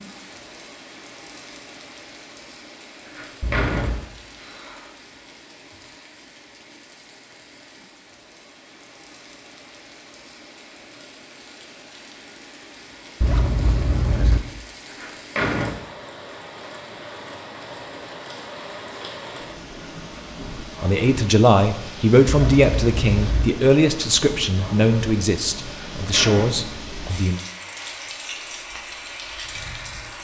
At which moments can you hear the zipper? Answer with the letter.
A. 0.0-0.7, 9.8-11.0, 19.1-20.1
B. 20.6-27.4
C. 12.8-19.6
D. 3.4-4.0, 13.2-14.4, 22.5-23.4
D.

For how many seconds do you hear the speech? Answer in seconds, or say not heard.
7 s.